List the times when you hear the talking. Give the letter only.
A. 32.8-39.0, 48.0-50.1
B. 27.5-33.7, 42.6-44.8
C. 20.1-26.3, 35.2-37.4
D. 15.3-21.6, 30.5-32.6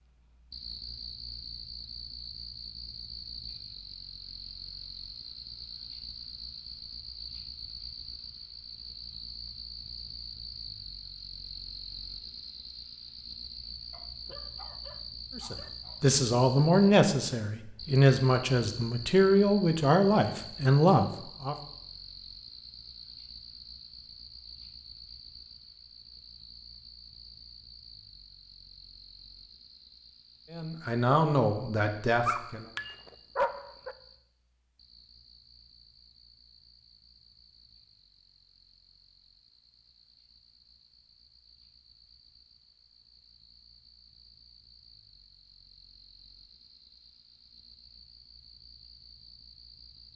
D.